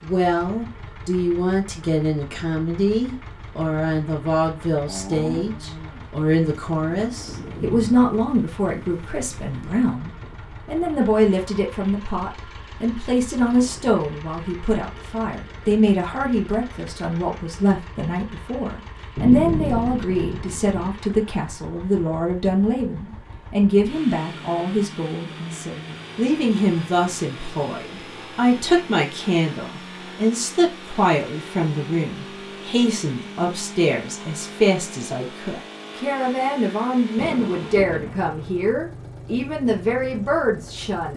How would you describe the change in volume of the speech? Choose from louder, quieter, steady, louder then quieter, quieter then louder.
steady.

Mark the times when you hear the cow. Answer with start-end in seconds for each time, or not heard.
4.8-7.3.